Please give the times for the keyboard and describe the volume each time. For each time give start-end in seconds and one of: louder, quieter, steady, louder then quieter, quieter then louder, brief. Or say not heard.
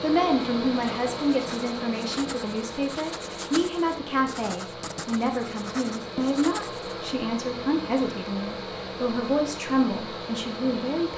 not heard.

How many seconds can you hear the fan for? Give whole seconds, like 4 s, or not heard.
11 s.